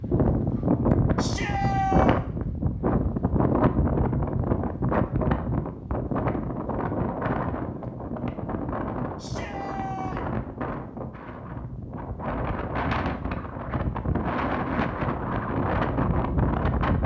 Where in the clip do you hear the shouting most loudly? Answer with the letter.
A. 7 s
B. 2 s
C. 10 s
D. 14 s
B.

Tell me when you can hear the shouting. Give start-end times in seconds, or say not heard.
1.1-2.1, 9.2-10.2.